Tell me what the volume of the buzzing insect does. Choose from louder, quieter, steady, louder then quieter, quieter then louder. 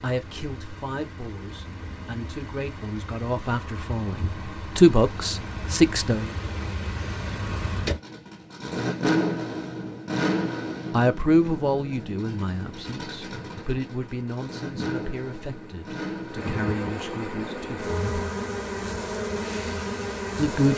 louder.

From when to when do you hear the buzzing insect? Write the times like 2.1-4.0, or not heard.
12.5-20.7.